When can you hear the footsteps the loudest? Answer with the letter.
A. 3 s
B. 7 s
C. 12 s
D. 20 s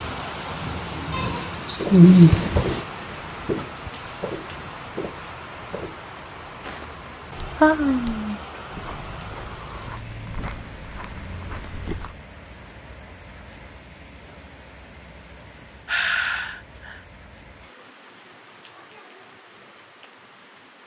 A.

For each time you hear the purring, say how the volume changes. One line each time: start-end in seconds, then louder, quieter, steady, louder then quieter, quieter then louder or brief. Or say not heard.
not heard.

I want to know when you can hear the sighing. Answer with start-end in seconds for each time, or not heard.
1.1-2.9, 7.6-8.3, 15.8-17.0.